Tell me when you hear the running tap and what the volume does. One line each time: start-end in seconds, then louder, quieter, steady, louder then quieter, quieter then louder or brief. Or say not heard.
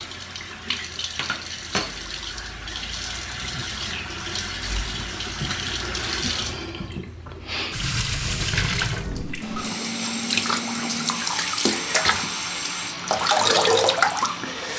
0.0-14.7 louder.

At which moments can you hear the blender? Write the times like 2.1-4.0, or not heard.
9.4-14.7.